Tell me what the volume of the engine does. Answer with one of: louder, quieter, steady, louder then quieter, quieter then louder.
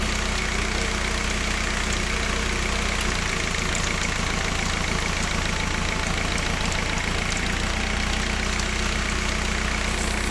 steady.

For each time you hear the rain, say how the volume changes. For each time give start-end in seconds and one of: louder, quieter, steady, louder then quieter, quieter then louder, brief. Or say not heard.
0.0-10.2 steady.